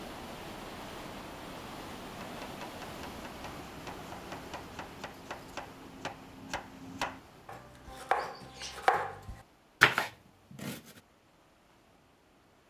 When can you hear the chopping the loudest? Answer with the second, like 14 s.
10 s.